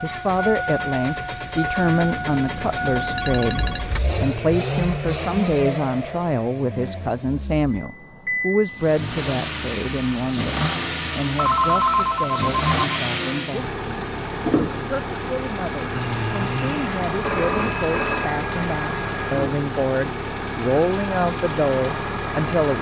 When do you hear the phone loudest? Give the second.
12 s.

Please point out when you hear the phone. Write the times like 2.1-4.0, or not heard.
1.8-3.9, 11.3-13.0, 15.9-18.4.